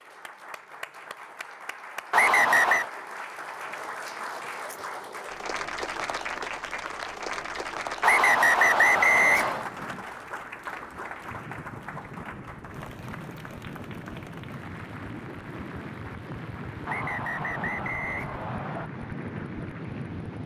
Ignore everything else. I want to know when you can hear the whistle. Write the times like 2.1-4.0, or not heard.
2.1-2.9, 8.0-9.7, 16.9-18.9.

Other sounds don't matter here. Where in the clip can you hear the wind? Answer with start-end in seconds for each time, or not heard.
8.8-20.4.